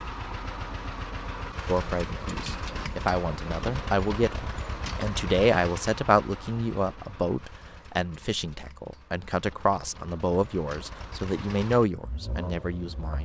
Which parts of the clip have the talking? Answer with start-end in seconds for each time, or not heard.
1.6-13.1.